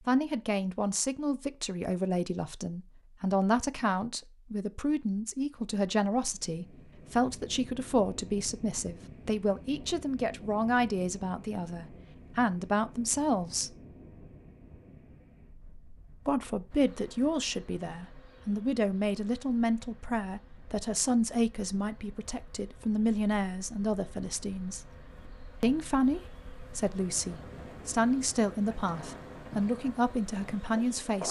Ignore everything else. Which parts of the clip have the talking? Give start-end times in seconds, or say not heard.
0.1-13.7, 16.2-24.8, 25.6-31.2.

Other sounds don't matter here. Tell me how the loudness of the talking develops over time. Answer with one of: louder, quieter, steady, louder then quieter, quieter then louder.
steady.